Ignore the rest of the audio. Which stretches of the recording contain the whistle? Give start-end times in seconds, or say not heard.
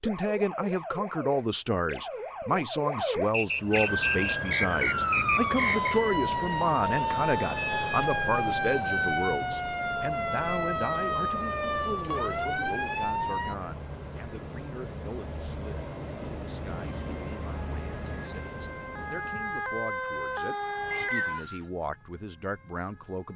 3.3-6.0, 20.9-21.7.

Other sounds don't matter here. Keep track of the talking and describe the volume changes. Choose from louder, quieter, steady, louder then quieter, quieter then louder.
quieter then louder.